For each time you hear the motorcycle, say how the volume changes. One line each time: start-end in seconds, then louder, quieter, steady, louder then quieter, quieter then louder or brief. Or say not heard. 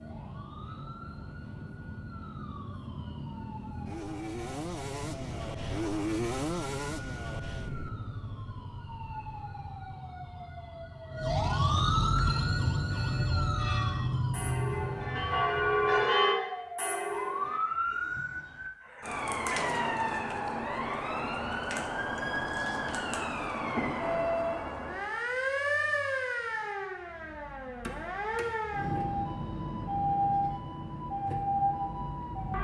0.0-9.9 louder then quieter.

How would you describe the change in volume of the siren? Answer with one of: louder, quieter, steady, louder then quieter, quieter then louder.
louder.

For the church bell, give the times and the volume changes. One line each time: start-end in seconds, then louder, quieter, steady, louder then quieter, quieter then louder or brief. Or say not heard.
12.2-17.6 louder then quieter.